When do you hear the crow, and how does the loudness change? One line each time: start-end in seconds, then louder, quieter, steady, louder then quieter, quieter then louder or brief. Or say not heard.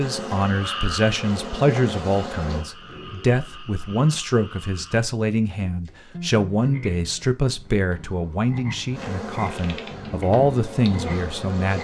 not heard.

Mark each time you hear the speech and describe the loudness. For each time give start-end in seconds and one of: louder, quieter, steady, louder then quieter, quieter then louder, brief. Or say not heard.
0.0-11.7 steady.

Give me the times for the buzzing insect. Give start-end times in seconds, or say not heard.
0.0-2.6, 8.9-11.7.